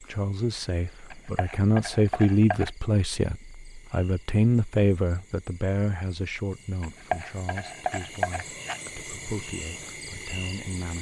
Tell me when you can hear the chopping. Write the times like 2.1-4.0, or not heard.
1.1-2.7, 6.8-8.8.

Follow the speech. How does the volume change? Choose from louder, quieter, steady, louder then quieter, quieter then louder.
quieter.